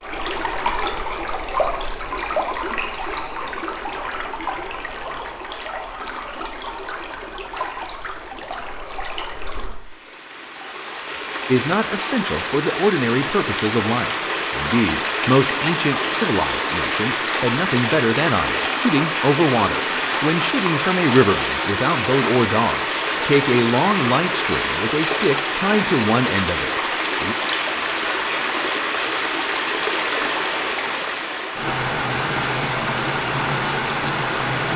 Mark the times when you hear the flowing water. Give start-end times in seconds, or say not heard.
0.0-34.7.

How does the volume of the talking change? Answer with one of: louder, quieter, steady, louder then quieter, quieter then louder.
steady.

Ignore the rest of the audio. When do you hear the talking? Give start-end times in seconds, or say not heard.
11.4-27.4.